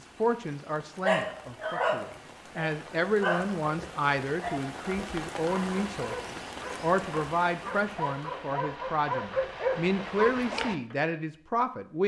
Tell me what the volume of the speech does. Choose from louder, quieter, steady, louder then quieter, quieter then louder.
louder.